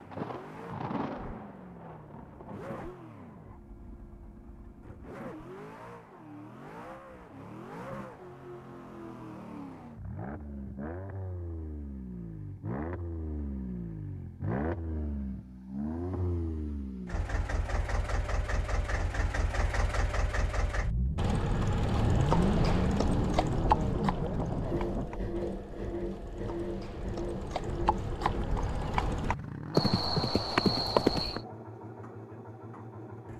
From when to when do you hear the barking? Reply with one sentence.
You can't hear the barking here.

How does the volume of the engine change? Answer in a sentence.
The volume of the engine goes up, then down.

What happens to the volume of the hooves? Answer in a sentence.
The volume of the hooves goes down, then up.